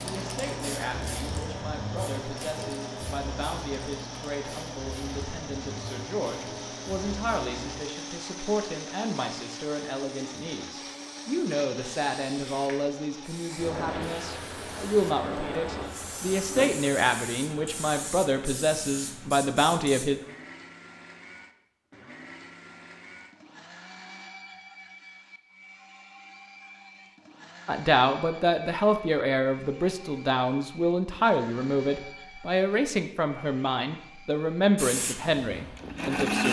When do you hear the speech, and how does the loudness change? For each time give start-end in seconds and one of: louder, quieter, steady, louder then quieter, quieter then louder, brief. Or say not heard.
0.0-20.2 louder
27.6-36.4 steady.